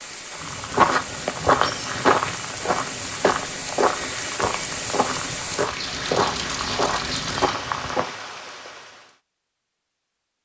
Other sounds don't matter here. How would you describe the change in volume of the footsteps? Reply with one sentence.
The loudness of the footsteps goes down.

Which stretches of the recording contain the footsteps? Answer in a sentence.
The footsteps can be heard from 0.3 to 8.2 s.